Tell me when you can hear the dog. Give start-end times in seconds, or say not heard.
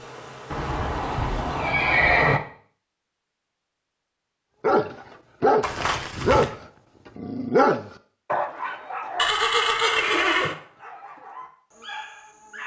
4.6-12.6.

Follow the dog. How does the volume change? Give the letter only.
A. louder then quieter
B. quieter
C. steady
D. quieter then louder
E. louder
B.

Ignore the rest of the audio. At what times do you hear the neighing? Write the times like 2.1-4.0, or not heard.
0.5-2.4, 5.6-6.5, 9.2-10.6.